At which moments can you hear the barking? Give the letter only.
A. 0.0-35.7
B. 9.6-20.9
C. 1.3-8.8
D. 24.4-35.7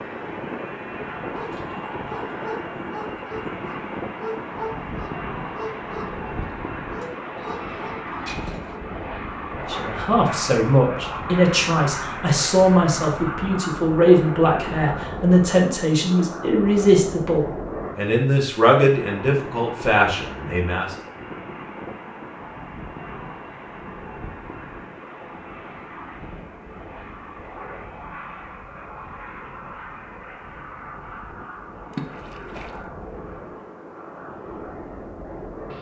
C.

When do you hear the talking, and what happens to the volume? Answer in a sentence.
You can hear the talking from 9.6 to 20.9 s, at a steady volume.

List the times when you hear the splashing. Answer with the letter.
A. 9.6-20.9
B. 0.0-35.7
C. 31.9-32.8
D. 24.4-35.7
C.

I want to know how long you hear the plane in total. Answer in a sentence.
The plane can be heard for 36 seconds in total.